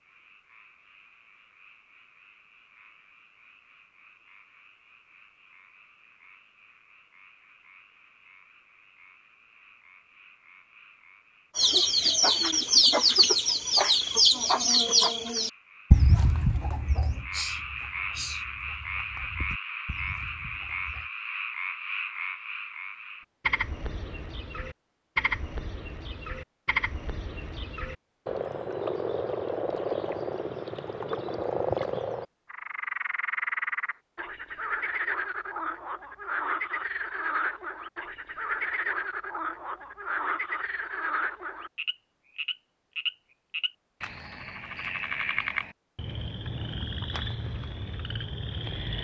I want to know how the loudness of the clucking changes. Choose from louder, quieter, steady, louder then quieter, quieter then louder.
quieter.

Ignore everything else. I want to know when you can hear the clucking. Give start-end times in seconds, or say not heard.
11.6-21.1.